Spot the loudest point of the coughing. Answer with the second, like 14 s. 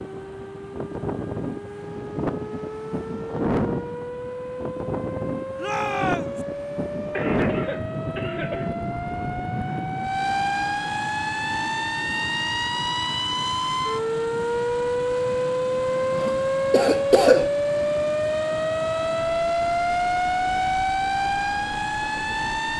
17 s.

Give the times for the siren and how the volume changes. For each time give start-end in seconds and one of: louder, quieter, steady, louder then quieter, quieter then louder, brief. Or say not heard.
0.0-22.7 louder.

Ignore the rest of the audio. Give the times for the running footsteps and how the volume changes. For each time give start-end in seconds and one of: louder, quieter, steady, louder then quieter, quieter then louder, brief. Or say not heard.
not heard.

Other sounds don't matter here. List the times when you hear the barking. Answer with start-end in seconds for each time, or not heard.
not heard.